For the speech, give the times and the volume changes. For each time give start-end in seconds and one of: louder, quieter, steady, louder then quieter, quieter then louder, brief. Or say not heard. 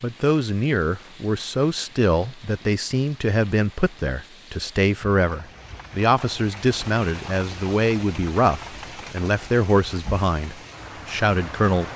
0.0-11.9 steady.